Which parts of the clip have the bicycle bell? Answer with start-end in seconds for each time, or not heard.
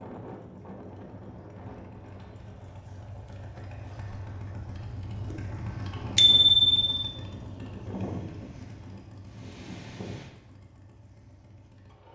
6.2-7.1.